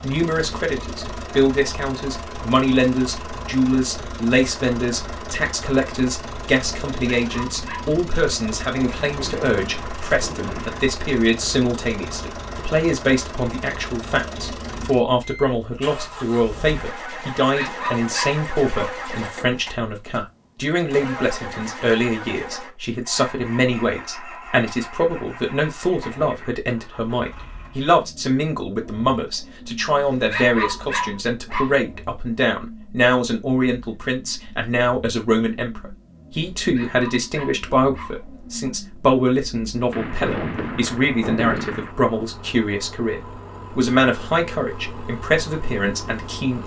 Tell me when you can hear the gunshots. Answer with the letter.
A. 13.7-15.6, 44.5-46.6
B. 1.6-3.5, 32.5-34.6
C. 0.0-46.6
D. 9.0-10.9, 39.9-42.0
D.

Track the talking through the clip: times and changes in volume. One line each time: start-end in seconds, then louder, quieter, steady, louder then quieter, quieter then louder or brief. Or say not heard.
0.0-46.6 steady.